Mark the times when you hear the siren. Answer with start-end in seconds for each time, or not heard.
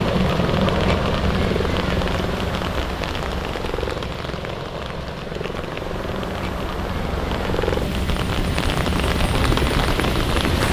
not heard.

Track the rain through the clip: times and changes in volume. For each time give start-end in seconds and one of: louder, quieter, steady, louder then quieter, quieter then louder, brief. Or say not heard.
0.0-10.6 quieter then louder.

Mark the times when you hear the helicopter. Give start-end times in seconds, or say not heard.
0.0-10.6.